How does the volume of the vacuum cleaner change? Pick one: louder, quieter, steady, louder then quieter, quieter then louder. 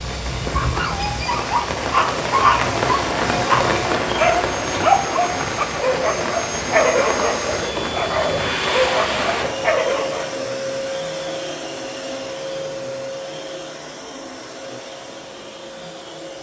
louder then quieter.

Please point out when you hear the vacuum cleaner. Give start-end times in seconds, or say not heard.
0.0-16.3.